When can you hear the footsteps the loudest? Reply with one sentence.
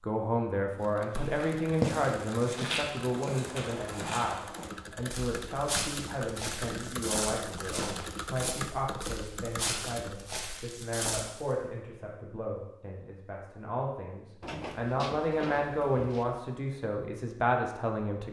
The volume of the footsteps peaks at 2 seconds.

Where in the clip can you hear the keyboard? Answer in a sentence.
You can hear the keyboard from 0.8 to 10.2 s.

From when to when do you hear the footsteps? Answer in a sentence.
The footsteps can be heard from 1.1 to 11.4 s.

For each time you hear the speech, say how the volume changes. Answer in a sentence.
You can hear the speech from 0.0 to 18.2 s, getting quieter then louder.